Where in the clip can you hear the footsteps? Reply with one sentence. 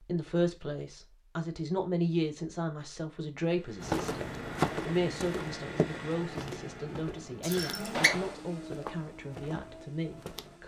You can hear the footsteps from 3.8 to 10.6 s.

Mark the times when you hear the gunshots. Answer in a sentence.
The gunshots can be heard from 7.9 to 8.4 s.